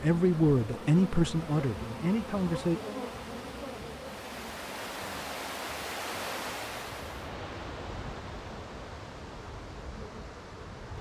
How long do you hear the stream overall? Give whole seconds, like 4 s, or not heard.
11 s.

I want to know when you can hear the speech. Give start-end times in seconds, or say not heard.
0.0-2.8.